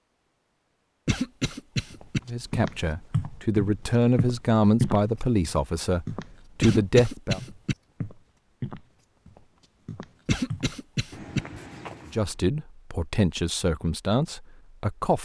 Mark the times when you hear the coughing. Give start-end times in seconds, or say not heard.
1.1-2.2, 6.6-7.8, 10.2-11.4.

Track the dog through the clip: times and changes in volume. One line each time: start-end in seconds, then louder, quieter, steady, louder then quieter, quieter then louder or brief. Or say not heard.
not heard.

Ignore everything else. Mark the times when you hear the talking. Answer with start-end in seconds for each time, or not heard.
2.2-7.4, 12.1-15.2.